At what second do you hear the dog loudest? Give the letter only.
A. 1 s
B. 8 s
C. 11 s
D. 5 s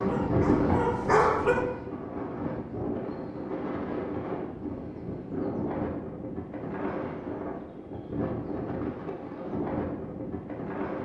A.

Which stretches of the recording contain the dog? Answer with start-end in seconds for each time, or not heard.
0.0-1.7.